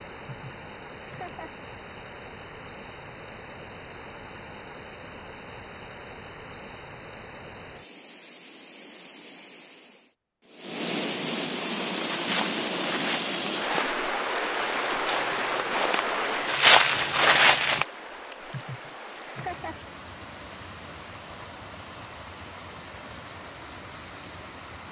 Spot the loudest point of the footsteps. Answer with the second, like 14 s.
17 s.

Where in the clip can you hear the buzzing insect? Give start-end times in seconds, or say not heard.
not heard.